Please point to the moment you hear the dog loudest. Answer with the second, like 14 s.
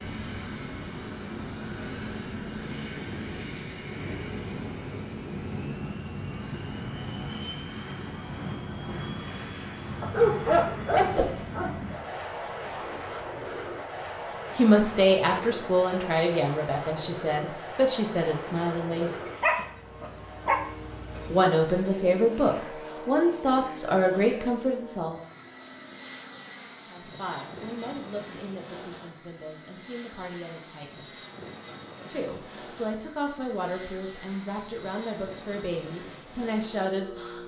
10 s.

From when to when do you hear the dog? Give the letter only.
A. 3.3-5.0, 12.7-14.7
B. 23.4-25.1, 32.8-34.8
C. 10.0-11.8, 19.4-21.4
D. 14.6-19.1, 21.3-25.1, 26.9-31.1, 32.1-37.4
C.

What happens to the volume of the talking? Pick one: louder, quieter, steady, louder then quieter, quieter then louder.
quieter.